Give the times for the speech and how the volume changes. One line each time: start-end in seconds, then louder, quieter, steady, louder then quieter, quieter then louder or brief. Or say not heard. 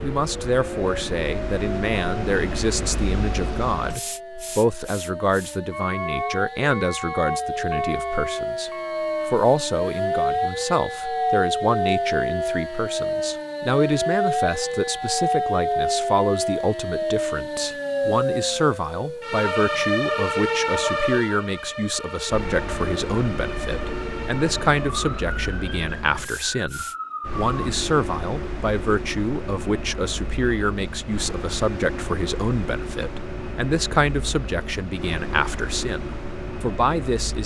0.0-37.4 steady.